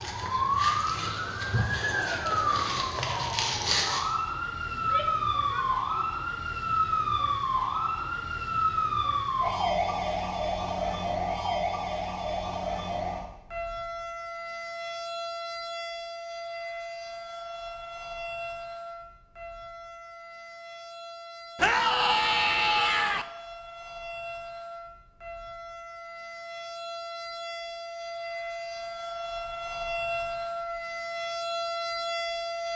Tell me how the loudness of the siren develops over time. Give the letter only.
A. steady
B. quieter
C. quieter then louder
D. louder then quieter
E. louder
C.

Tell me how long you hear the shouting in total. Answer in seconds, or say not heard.
3 s.